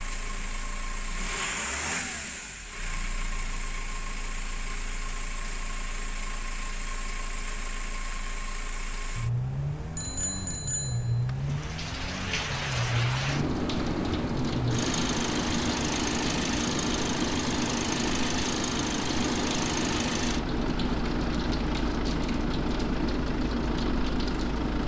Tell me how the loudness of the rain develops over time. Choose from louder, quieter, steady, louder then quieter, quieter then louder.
steady.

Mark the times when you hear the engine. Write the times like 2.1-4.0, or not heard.
0.0-24.8.